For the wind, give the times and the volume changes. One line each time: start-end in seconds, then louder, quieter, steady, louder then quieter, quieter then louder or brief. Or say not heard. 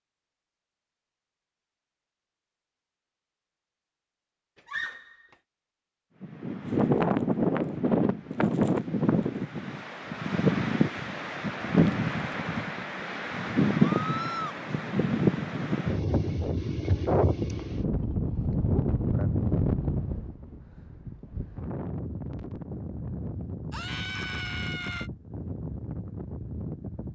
6.2-27.1 quieter.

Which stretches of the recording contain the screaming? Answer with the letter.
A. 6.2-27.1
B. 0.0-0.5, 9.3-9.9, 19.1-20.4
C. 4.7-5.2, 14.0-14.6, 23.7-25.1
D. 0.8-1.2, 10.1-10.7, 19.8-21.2
C.